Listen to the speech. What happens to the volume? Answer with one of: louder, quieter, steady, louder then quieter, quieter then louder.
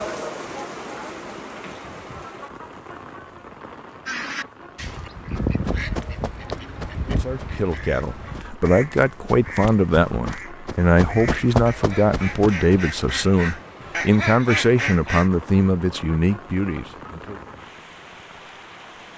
steady.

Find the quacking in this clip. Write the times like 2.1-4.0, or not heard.
4.0-15.3.